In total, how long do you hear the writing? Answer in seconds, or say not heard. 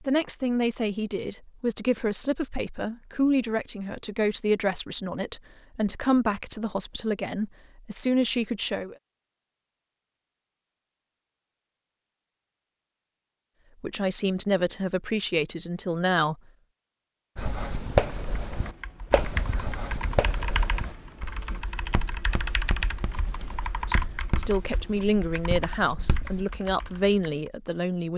9 s.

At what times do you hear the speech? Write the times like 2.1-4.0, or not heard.
0.0-8.9, 13.8-16.4, 23.9-28.1.